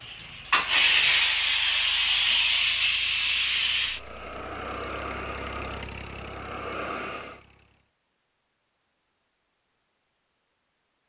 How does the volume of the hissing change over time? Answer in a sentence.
The volume of the hissing goes down.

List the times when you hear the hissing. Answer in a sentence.
The hissing can be heard from 0.0 to 7.4 s.